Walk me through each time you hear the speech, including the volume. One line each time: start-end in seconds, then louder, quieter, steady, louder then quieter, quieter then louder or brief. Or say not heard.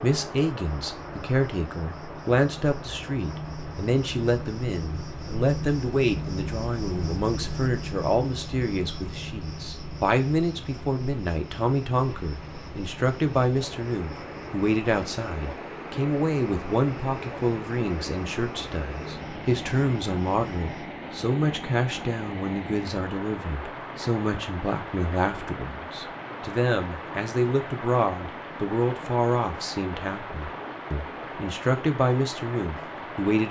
0.0-33.4 steady.